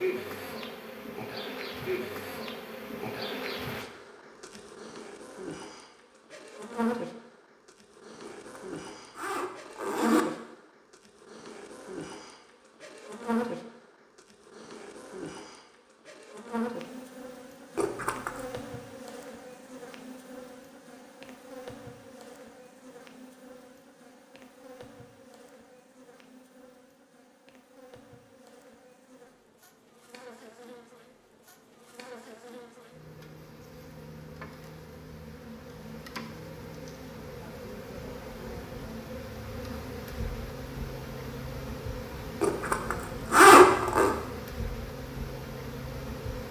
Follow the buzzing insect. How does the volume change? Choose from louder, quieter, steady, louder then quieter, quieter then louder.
quieter then louder.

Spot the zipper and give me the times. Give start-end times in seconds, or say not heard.
8.2-10.2, 17.8-18.4, 42.4-44.1.